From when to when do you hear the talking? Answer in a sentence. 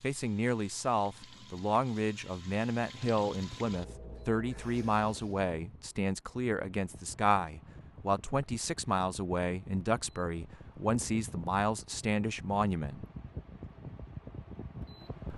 You can hear the talking from 0.0 to 13.1 s.